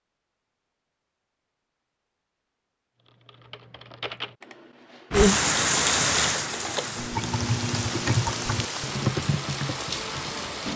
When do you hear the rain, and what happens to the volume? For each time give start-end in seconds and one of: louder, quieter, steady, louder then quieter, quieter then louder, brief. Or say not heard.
5.1-10.7 quieter.